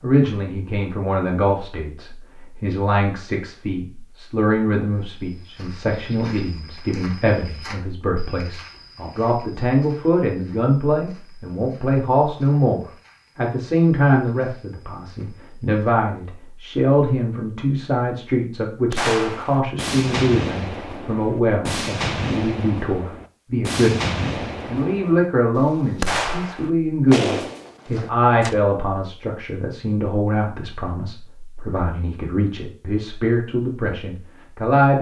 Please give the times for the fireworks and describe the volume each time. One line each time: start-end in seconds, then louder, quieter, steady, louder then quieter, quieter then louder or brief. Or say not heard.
18.9-28.6 steady.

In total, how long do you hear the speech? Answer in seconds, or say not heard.
35 s.